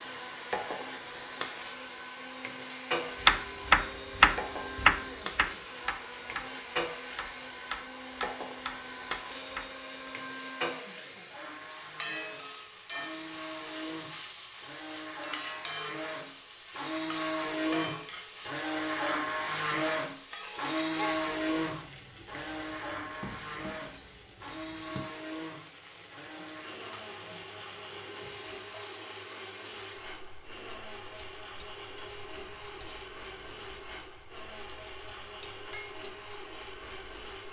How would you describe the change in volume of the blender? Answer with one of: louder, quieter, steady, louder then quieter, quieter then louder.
louder then quieter.